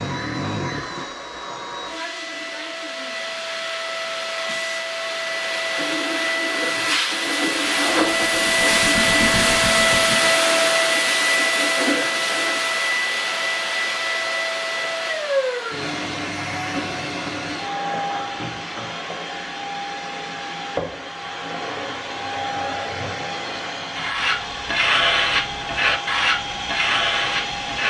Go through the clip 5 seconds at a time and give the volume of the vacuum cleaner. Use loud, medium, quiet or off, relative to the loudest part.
medium, loud, loud, medium, medium, medium.